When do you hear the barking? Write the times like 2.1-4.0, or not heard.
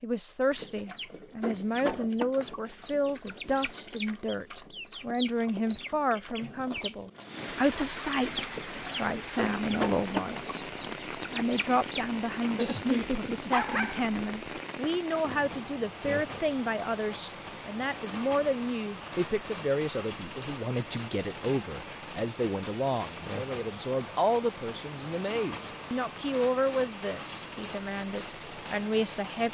12.6-14.1.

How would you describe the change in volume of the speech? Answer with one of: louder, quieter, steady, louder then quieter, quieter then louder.
steady.